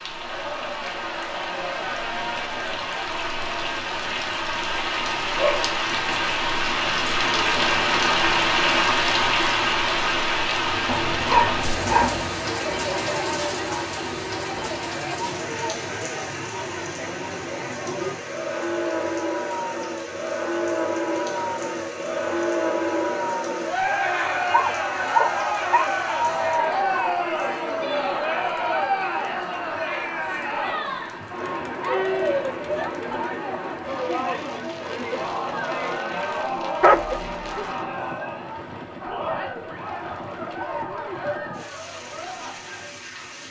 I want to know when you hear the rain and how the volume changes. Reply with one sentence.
The rain can be heard from 0.0 to 43.4 s, getting quieter.